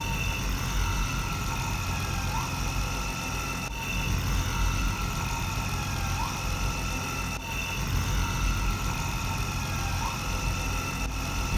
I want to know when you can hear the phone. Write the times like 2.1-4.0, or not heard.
not heard.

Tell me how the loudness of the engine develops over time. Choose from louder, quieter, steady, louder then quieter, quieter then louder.
steady.